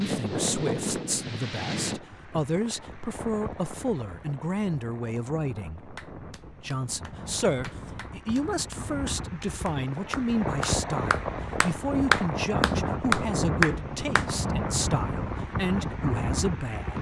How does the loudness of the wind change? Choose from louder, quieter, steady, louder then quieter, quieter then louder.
quieter then louder.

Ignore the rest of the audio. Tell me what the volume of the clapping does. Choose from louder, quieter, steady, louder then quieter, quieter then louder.
louder.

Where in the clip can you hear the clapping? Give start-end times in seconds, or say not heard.
6.0-14.2.